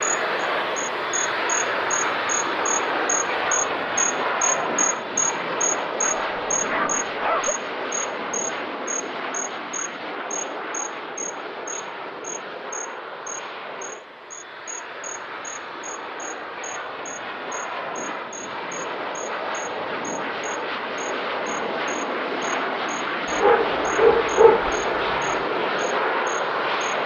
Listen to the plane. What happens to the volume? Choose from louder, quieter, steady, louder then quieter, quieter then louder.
quieter then louder.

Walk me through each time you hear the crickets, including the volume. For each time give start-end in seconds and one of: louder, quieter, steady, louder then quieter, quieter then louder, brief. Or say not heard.
0.0-26.9 quieter.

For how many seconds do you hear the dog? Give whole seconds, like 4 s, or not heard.
3 s.